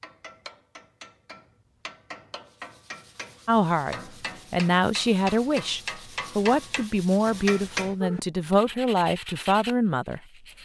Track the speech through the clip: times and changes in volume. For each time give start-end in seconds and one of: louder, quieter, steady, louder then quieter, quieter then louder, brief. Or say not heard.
3.5-10.2 steady.